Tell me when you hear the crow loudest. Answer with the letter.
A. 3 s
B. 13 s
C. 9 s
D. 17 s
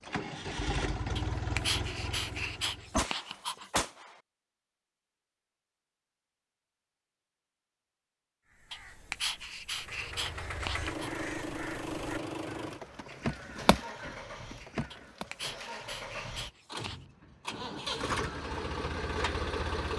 B.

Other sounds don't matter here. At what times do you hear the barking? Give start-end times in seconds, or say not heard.
1.1-3.7, 8.7-11.1, 14.9-17.1.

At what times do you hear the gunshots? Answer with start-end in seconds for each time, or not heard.
2.9-4.1.